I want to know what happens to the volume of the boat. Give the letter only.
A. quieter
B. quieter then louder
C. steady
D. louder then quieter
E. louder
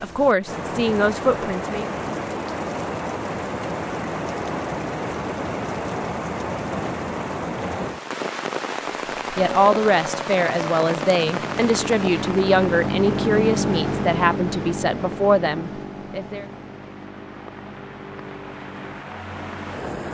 D.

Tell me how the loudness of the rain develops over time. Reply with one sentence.
The volume of the rain goes down.